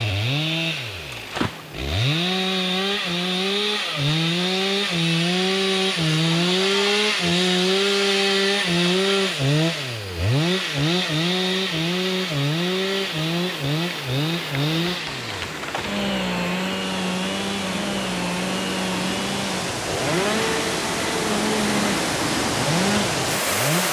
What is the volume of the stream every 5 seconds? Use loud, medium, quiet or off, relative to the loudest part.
quiet, quiet, quiet, medium, loud.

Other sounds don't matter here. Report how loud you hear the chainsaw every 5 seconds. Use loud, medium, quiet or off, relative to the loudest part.
loud, loud, loud, medium, medium.